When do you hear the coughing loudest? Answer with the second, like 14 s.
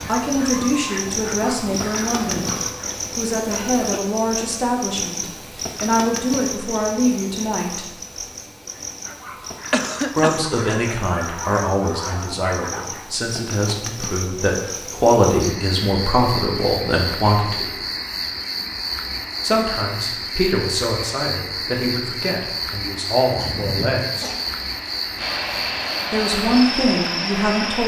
10 s.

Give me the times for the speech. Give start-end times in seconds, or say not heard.
0.1-2.5, 3.1-7.8, 10.2-17.6, 19.4-24.3, 26.1-27.8.